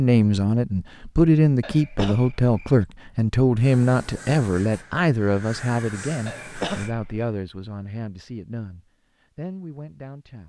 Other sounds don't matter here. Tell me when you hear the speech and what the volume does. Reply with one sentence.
You can hear the speech from 0.0 to 10.4 s, getting quieter.